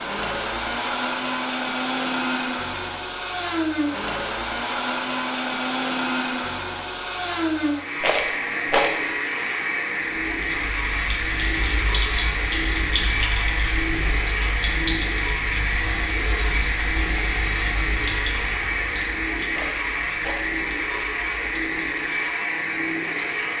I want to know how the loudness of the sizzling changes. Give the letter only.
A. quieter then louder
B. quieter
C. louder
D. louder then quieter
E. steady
B.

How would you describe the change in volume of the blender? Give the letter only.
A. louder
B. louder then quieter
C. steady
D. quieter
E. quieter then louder
C.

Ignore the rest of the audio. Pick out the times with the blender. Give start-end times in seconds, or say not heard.
0.0-23.5.